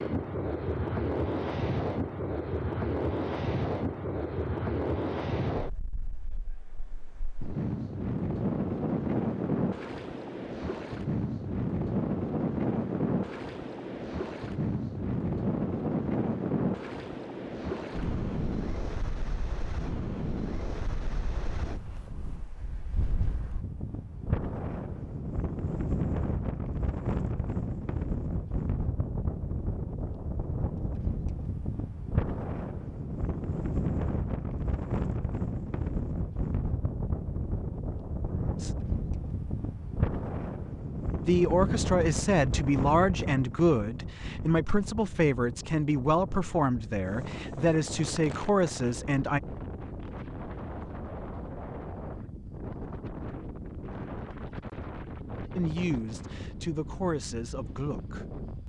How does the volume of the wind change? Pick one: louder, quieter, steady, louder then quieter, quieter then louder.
quieter.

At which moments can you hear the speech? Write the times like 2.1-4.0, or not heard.
38.3-38.7, 41.2-49.4, 55.5-58.2.